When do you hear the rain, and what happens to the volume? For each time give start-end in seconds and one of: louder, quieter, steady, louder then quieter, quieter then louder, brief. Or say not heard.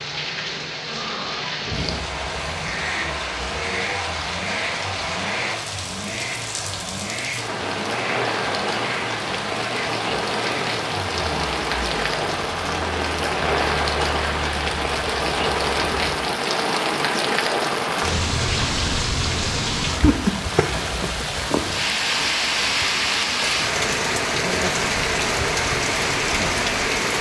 0.0-27.1 louder.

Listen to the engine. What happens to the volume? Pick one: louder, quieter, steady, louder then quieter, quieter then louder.
steady.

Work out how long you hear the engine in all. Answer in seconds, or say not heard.
14 s.